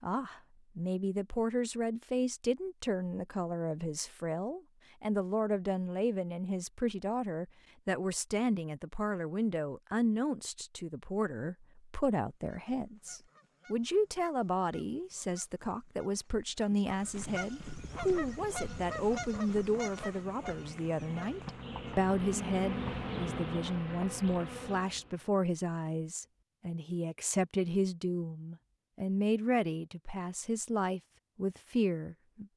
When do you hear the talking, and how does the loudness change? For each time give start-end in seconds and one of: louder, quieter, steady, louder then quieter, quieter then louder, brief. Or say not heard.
0.0-32.5 steady.